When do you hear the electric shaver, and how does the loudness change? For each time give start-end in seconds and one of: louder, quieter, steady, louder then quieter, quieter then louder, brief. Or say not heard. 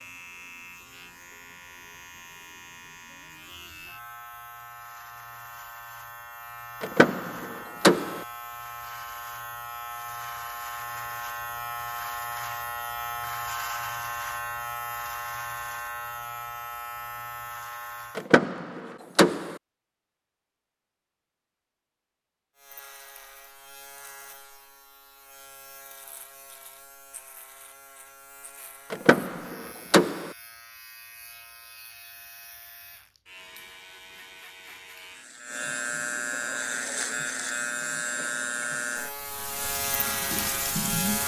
0.0-18.3 louder
22.6-41.2 louder.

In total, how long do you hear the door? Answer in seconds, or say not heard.
4 s.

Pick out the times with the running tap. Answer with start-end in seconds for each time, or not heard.
39.1-41.2.